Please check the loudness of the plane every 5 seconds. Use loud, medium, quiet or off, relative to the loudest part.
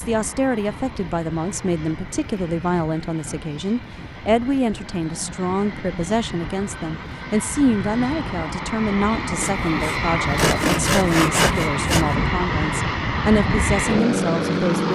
quiet, medium, loud.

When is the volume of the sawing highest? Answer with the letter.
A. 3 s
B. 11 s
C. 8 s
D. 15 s
B.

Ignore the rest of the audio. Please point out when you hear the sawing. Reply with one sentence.
You can hear the sawing from 9.4 to 12.2 s.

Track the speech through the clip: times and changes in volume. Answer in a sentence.
The speech can be heard from 0.0 to 14.9 s, at a steady volume.